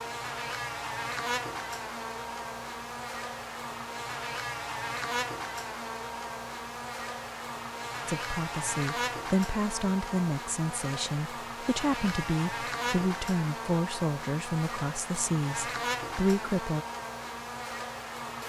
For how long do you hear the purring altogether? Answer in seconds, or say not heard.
not heard.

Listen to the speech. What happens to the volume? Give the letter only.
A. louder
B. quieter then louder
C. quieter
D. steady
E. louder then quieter
D.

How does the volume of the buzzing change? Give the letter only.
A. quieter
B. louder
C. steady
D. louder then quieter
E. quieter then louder
C.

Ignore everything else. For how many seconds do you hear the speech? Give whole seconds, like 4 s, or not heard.
9 s.